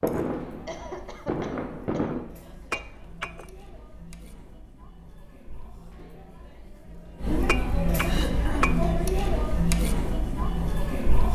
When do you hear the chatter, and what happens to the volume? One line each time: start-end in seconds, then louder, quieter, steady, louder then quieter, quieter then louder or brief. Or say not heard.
0.0-11.3 louder.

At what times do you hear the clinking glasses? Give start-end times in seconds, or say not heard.
2.7-3.5, 7.5-8.8.